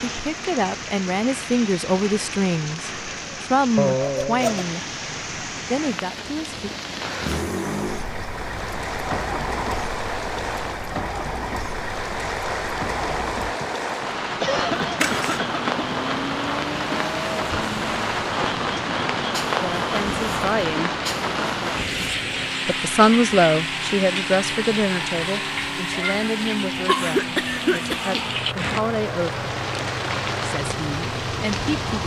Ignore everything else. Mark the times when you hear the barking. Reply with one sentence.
You can't hear the barking here.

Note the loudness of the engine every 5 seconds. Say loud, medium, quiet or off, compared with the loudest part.
off, loud, medium, loud, loud, loud, loud.